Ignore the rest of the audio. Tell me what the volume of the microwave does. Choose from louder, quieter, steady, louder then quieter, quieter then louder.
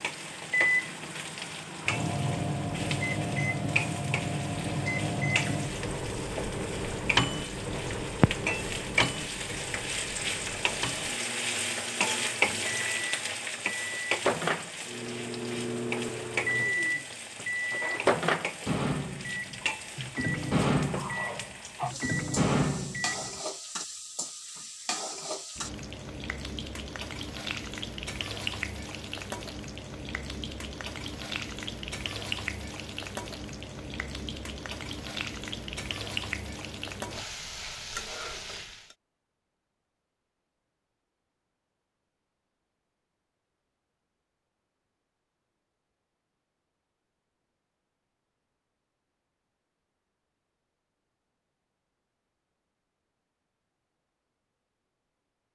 quieter then louder.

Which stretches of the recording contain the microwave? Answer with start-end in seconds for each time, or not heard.
0.0-23.4.